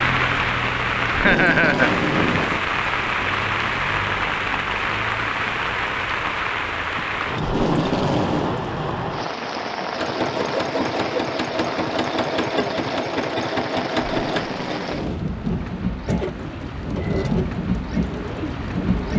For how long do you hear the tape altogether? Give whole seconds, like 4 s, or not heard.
4 s.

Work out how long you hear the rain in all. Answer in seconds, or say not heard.
19 s.